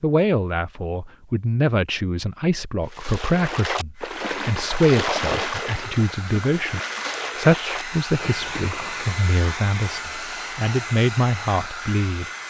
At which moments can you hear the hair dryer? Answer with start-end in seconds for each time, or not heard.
4.0-12.4.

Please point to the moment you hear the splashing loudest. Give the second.
5 s.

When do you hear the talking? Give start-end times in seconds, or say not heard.
0.0-12.2.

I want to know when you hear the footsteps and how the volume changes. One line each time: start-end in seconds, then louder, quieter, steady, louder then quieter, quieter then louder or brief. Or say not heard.
not heard.